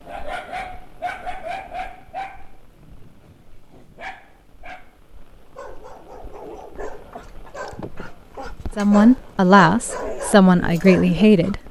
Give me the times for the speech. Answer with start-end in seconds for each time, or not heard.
8.8-11.6.